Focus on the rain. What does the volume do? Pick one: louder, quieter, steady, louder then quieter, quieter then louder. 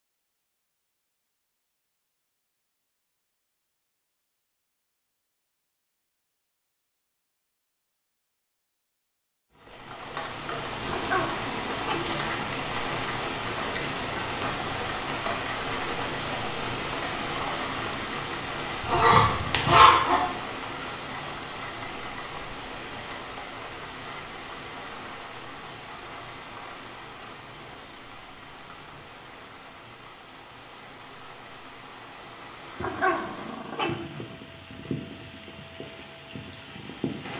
quieter.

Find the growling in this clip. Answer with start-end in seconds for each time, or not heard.
10.8-12.5, 32.8-34.4.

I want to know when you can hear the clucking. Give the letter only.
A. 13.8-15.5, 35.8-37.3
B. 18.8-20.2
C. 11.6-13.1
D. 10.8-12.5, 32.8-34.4
B.